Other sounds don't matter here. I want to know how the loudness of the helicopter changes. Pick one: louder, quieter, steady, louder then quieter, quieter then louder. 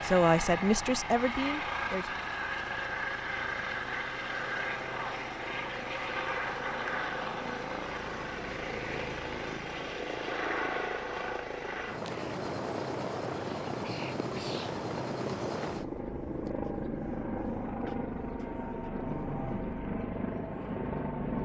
steady.